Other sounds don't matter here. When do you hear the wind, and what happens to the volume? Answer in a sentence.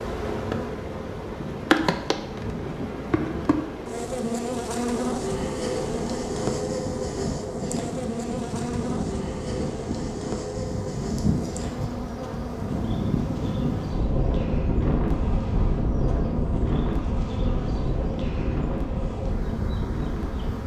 The wind can be heard from 0.0 to 20.6 s, getting louder.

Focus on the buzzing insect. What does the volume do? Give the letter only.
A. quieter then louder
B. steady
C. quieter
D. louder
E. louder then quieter
C.